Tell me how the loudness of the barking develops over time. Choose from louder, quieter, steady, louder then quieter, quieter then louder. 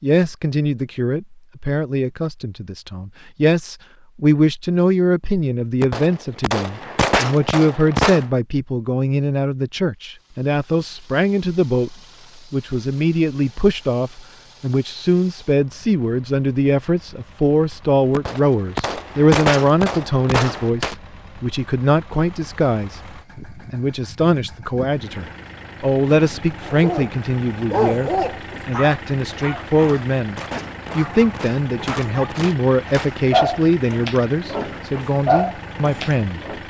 quieter then louder.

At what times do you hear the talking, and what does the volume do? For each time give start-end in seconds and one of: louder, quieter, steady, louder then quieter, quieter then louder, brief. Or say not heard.
0.0-36.4 steady.